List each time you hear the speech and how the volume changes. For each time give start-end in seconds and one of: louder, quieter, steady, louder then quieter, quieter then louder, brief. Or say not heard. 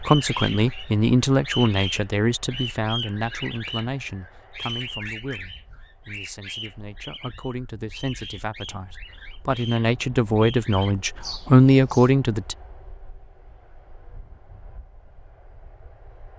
0.0-12.6 quieter then louder.